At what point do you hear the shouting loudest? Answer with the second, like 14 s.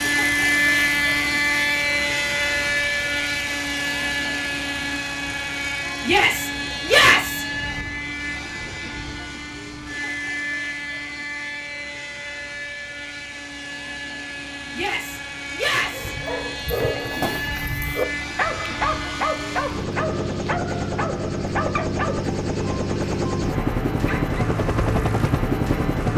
7 s.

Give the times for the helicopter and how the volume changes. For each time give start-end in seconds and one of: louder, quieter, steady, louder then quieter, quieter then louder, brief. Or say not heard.
0.0-26.1 quieter then louder.